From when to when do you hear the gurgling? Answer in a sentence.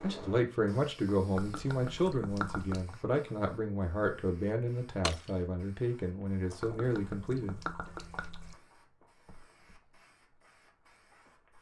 The gurgling can be heard from 1.4 to 3.0 s and from 6.6 to 8.6 s.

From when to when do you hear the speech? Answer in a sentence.
The speech can be heard from 0.0 to 7.6 s.